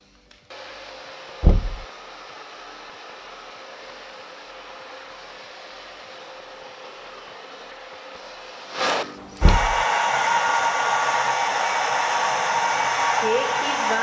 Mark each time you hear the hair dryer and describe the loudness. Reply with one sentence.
The hair dryer can be heard from 0.0 to 13.9 s, getting louder.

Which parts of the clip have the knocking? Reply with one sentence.
You can hear the knocking from 1.4 to 1.9 s and from 9.4 to 9.8 s.